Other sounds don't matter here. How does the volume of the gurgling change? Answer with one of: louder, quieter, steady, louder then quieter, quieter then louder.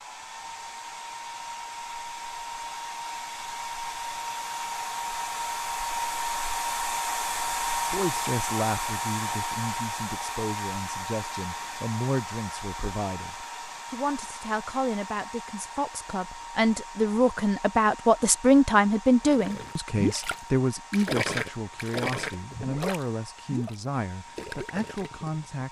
quieter.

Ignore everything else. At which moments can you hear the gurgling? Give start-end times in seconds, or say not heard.
19.2-25.6.